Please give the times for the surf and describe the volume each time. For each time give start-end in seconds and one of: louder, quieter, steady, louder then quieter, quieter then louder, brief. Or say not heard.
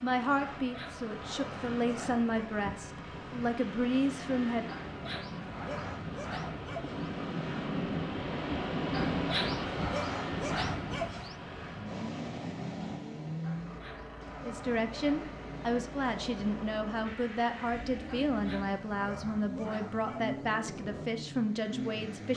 0.0-22.3 louder then quieter.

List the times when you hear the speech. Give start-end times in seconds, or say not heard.
0.0-4.7, 14.4-22.3.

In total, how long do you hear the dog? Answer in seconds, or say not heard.
11 s.